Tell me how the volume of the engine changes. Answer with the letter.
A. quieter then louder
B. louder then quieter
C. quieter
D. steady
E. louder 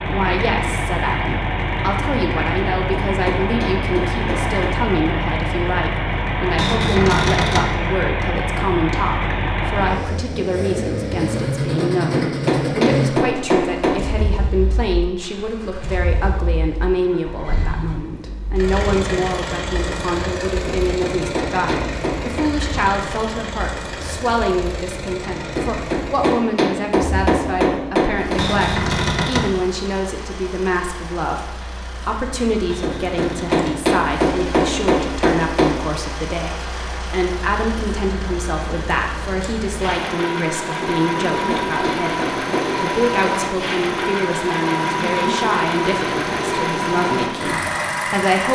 A.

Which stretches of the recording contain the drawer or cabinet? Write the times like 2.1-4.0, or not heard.
6.5-7.8, 28.4-29.6, 32.6-33.9.